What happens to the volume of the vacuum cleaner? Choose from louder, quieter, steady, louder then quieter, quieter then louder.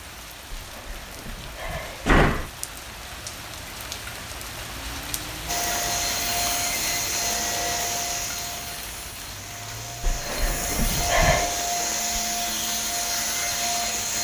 quieter then louder.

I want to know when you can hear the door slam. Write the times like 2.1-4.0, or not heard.
0.5-2.5, 10.0-11.7.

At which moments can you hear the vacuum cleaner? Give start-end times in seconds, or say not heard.
5.5-14.1.